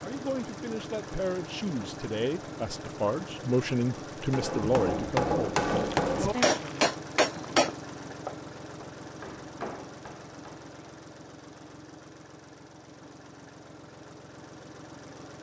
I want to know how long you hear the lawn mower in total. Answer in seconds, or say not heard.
15 s.